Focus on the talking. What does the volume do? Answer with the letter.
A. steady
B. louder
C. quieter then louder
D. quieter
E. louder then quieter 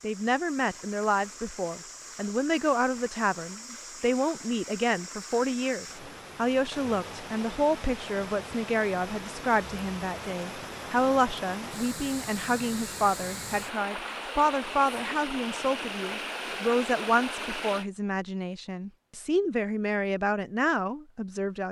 A.